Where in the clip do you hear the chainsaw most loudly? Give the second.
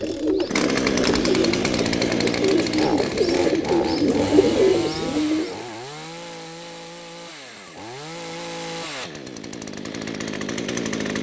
1 s.